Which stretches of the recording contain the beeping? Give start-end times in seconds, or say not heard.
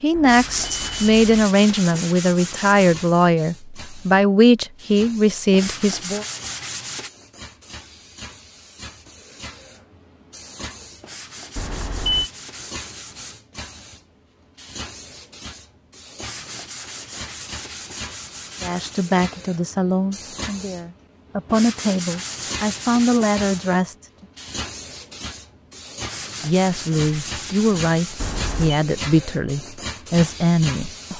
0.1-1.2, 11.6-12.3, 28.1-28.8.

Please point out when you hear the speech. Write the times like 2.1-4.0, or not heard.
0.0-6.2, 18.6-24.1, 26.4-31.1.